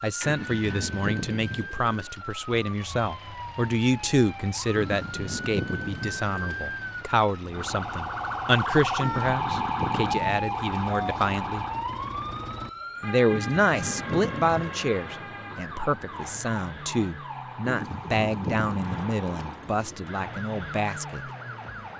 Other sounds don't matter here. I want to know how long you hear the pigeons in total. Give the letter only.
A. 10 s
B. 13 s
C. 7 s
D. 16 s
A.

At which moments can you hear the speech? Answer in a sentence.
You can hear the speech from 0.0 to 11.7 s and from 13.0 to 21.2 s.